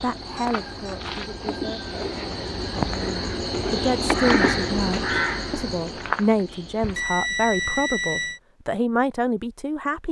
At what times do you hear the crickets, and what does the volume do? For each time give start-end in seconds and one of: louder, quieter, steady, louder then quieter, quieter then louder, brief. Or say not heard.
0.0-7.0 louder then quieter.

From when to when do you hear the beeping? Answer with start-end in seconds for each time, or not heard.
0.3-0.9, 7.0-8.4.